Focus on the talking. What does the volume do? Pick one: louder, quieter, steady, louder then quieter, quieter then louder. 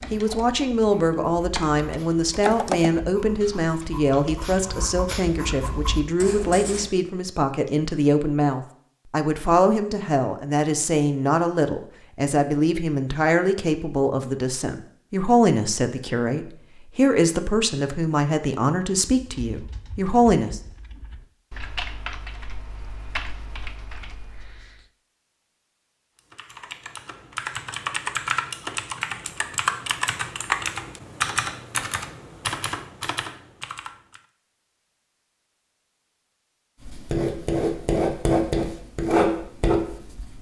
steady.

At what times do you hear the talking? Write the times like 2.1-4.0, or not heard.
0.1-20.6.